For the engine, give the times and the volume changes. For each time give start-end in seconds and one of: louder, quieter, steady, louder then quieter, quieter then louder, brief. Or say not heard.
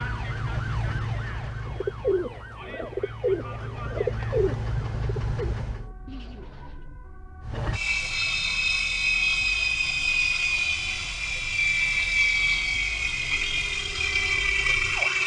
0.0-5.9 quieter then louder
7.4-15.2 steady.